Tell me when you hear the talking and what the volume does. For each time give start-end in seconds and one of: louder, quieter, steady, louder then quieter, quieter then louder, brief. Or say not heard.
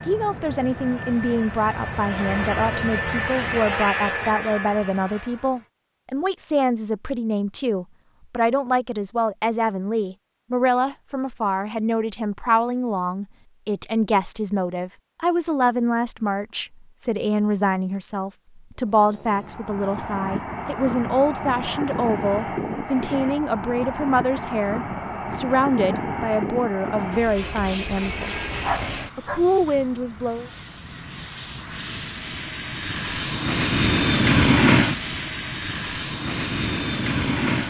0.0-30.5 steady.